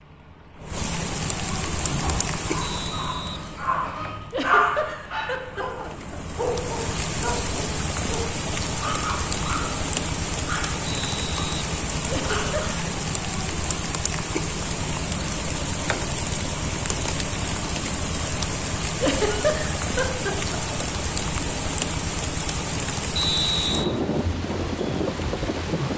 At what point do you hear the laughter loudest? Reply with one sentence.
The loudest moment of the laughter is at 19 seconds.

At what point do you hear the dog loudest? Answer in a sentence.
The loudest moment of the dog is at 5 seconds.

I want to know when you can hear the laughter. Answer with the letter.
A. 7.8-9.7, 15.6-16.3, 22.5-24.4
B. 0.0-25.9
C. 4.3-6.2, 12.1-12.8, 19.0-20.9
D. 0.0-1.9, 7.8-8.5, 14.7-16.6
C.